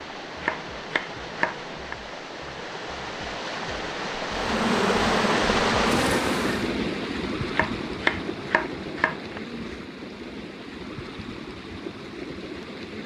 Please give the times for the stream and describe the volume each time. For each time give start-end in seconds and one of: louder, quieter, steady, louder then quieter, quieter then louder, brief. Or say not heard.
0.0-13.0 louder then quieter.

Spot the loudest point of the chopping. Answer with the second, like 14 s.
8 s.